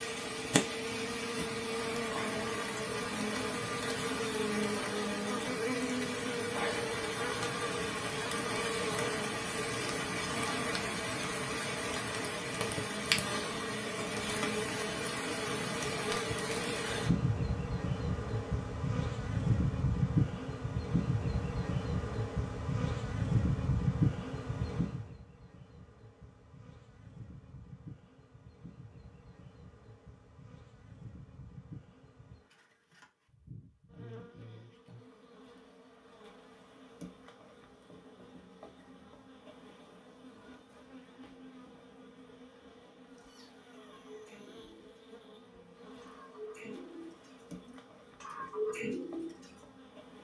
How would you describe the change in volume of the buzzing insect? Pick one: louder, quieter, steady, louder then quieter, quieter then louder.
quieter.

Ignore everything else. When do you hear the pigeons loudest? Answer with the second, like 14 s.
49 s.